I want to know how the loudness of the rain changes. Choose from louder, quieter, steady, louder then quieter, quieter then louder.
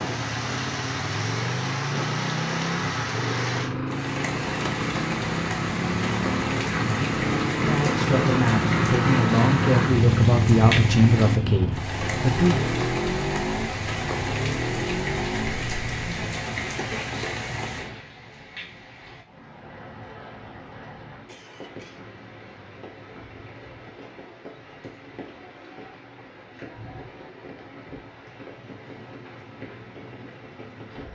quieter.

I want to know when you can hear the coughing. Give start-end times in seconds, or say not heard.
21.2-22.0.